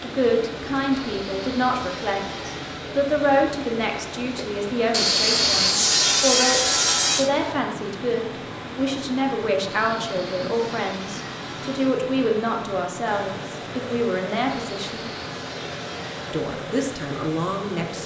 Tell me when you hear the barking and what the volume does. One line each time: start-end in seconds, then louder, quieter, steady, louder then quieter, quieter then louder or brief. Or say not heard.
not heard.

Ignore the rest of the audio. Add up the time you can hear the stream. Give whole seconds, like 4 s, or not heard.
18 s.